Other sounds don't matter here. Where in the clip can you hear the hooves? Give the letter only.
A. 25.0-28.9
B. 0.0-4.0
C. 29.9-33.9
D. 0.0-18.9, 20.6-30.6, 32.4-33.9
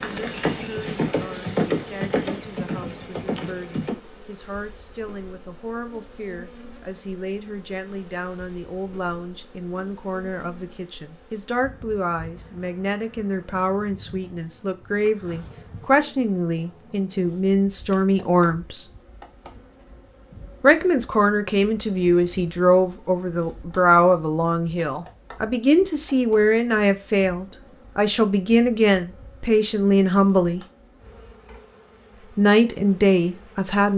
B.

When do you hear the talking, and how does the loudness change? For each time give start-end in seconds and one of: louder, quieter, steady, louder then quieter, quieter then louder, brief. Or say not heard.
0.0-18.9 louder
20.6-30.6 steady
32.4-33.9 brief.